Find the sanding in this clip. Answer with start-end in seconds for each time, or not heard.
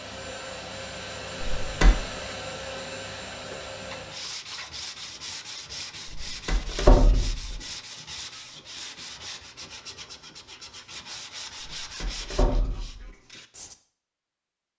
3.5-13.8.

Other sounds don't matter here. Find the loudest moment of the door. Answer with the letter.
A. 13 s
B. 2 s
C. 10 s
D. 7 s
D.